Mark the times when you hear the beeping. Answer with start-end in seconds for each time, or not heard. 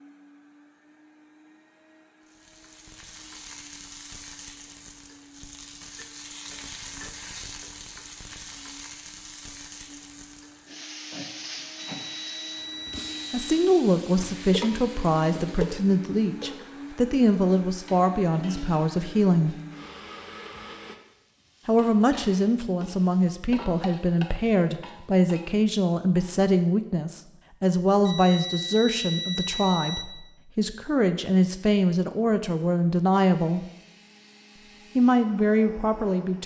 12.0-13.7, 28.1-30.1.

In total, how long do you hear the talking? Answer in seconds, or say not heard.
20 s.